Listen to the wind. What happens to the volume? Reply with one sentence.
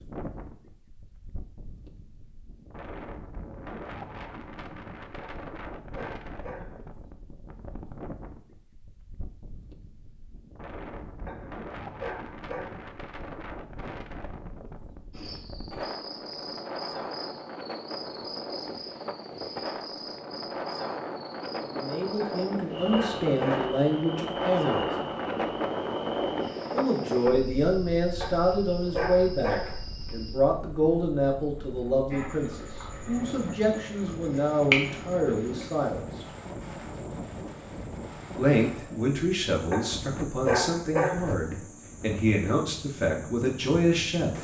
The volume of the wind goes up, then down.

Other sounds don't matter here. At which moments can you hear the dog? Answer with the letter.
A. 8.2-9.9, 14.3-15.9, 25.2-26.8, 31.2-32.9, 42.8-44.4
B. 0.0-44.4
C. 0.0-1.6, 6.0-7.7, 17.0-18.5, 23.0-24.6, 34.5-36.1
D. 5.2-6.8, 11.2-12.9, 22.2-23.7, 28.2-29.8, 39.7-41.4
D.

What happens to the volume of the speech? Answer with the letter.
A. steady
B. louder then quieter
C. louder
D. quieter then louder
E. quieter
A.